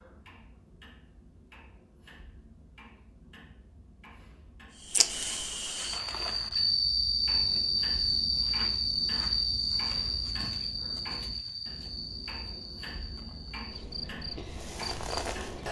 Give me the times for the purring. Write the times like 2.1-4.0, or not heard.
not heard.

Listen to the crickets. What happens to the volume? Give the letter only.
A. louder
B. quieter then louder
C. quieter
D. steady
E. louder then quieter
C.